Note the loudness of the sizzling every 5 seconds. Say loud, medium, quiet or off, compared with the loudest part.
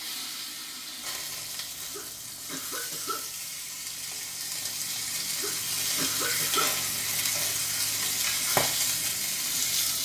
medium, loud.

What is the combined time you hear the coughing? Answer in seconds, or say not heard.
3 s.